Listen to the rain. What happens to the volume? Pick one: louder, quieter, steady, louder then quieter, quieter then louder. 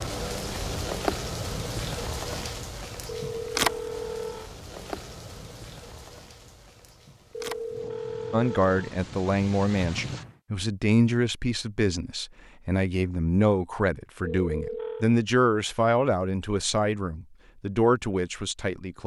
quieter.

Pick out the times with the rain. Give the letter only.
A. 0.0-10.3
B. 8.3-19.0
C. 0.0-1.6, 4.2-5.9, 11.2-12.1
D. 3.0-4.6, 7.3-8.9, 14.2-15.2
A.